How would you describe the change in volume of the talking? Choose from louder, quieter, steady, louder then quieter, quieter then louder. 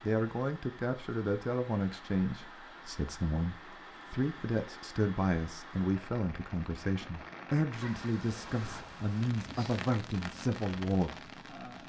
steady.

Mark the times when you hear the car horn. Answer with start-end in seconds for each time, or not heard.
not heard.